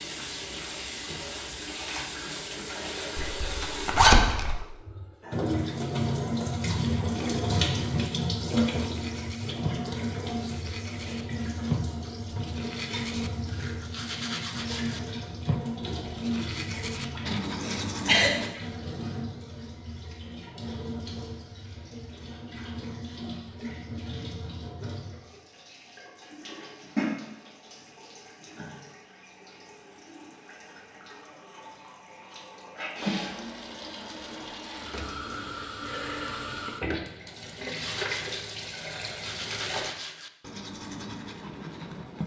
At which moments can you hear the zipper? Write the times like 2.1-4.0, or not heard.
3.1-4.5.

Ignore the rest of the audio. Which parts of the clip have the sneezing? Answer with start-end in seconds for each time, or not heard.
17.6-18.3.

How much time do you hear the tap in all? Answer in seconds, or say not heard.
40 s.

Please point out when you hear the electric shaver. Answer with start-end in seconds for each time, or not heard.
not heard.